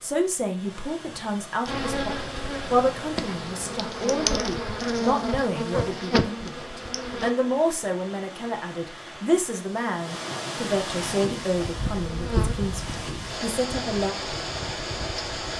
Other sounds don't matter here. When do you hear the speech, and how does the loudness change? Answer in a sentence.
The speech can be heard from 0.0 to 14.2 s, at a steady volume.